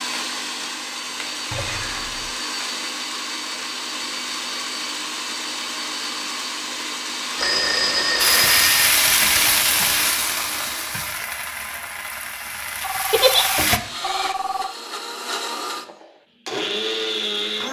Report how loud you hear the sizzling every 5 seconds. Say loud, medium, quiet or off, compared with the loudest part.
off, loud, medium, off.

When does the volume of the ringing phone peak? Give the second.
8 s.